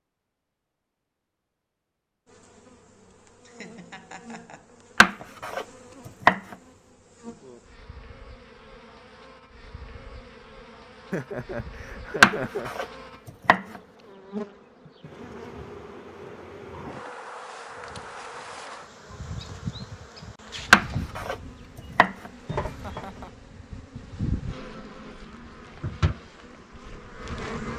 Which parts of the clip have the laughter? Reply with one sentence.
The laughter can be heard from 3.5 to 4.8 s, from 11.1 to 12.7 s and from 22.6 to 23.3 s.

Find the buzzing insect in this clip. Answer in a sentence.
You can hear the buzzing insect from 2.2 to 27.7 s.